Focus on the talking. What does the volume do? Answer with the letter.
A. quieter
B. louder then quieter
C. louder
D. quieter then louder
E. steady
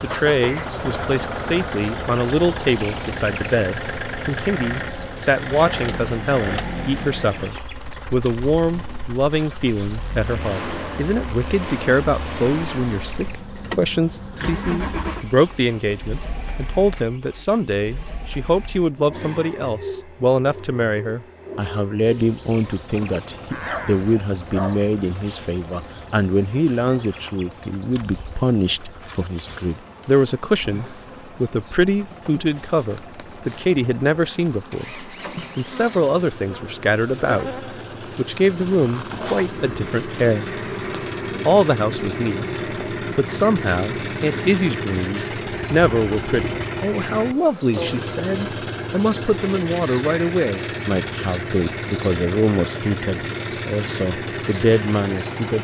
E.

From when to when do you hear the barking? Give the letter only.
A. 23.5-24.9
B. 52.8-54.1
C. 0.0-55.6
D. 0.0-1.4
A.